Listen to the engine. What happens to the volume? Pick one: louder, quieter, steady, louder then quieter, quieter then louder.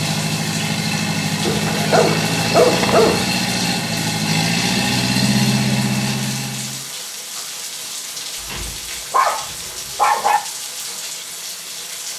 steady.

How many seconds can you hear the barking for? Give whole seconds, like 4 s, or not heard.
4 s.